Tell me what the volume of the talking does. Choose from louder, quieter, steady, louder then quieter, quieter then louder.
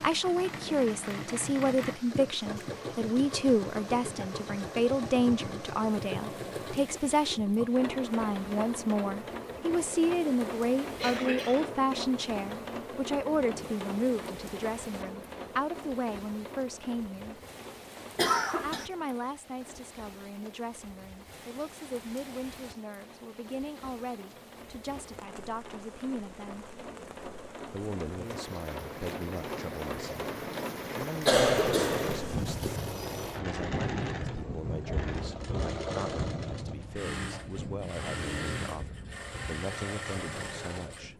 quieter.